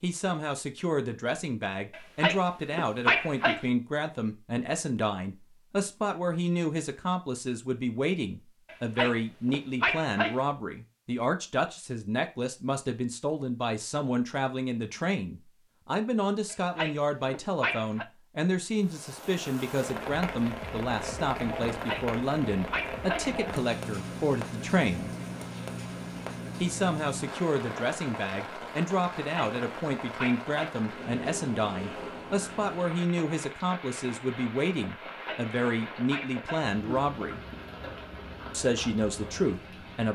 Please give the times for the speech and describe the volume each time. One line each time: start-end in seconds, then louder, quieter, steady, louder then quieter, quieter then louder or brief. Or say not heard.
0.0-25.1 steady
26.6-37.4 steady
38.5-40.1 brief.